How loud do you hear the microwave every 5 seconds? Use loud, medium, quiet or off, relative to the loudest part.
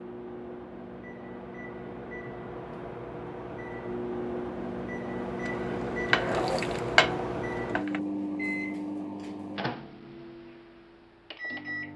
medium, loud, medium.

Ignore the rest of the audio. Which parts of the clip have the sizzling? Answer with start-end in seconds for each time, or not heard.
5.4-8.0.